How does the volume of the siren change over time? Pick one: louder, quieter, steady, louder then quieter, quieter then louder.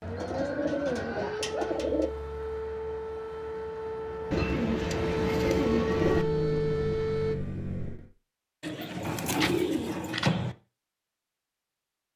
louder.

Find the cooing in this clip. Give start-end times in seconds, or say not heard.
0.1-2.1, 4.3-6.2, 8.6-10.6.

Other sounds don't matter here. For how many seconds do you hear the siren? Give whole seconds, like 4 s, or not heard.
7 s.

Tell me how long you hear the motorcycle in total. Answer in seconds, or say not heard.
2 s.